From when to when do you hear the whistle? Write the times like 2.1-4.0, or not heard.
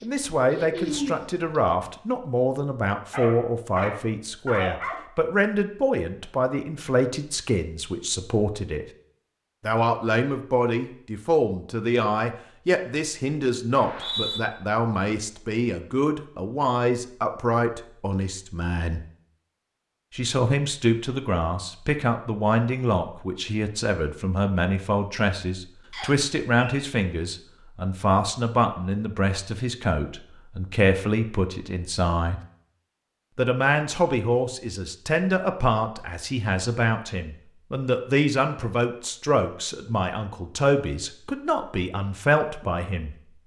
13.7-14.4, 25.9-26.8.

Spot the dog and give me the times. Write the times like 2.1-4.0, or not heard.
3.1-5.0.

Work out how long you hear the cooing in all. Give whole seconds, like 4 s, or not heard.
2 s.